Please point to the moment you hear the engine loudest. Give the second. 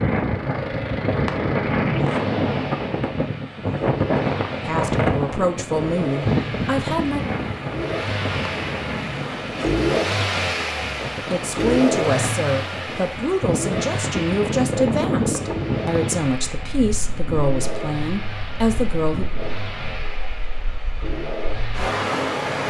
10 s.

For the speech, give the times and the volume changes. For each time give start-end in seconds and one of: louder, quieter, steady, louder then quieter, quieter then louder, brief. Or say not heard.
4.7-7.2 brief
11.3-19.2 steady.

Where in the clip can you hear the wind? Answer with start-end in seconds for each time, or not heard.
0.0-22.6.